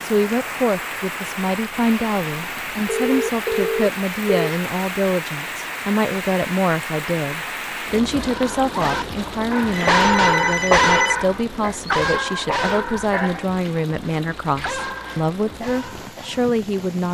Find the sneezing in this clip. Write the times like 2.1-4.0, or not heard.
not heard.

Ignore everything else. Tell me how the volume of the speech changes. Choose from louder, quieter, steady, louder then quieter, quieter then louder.
steady.